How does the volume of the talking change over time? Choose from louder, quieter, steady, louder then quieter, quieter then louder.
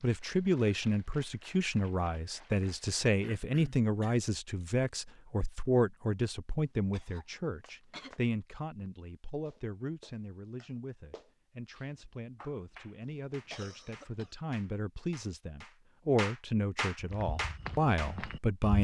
quieter then louder.